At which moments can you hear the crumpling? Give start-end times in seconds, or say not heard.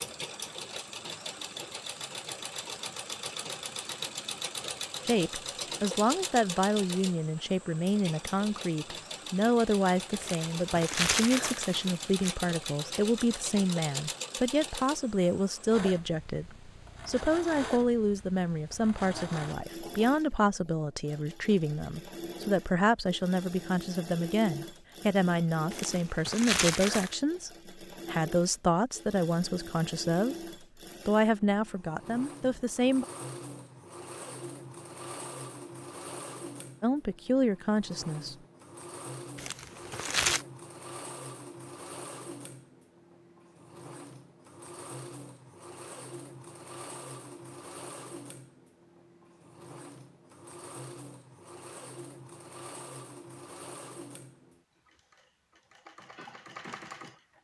10.2-12.3, 25.7-27.1, 39.4-40.5.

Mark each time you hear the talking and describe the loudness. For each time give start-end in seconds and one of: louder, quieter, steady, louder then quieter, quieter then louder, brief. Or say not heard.
5.0-30.4 steady
31.1-33.0 brief
36.8-38.4 brief.